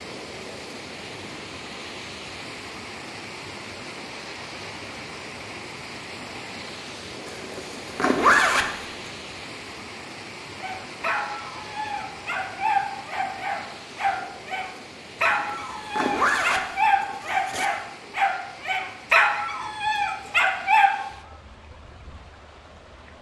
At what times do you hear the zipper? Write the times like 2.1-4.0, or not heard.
7.2-9.1, 15.4-17.7.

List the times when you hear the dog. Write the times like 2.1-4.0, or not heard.
10.6-21.1.